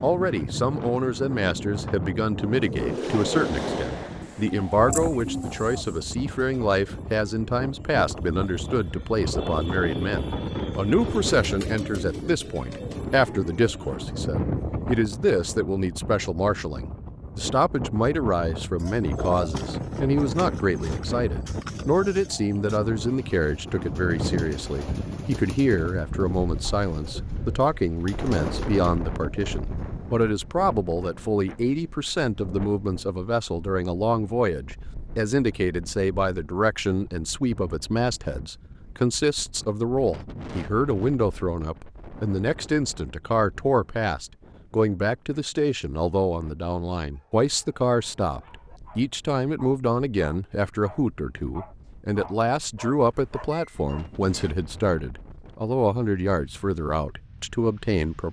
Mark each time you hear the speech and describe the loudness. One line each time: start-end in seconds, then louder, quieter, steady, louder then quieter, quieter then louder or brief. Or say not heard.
0.0-58.2 steady.